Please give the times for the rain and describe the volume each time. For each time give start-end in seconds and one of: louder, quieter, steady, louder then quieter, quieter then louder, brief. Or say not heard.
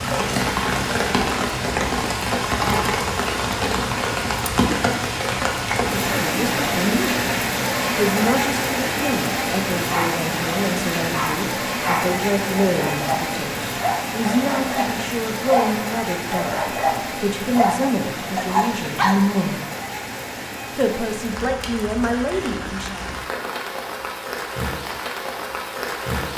0.0-26.3 quieter.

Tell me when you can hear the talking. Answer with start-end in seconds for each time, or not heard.
5.9-7.2, 8.0-19.6, 20.8-23.1.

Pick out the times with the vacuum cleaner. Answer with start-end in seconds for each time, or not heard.
not heard.